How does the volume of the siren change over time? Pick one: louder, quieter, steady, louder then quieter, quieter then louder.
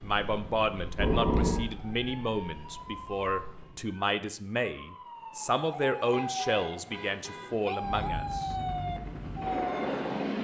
louder.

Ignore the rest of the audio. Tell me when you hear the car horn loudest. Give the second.
1 s.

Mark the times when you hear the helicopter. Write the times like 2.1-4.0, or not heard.
7.8-10.4.